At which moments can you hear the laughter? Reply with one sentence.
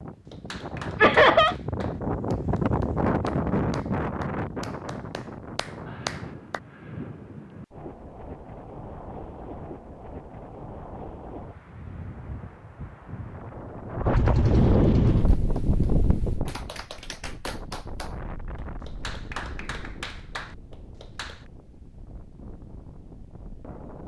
The laughter can be heard from 1.0 to 1.6 s.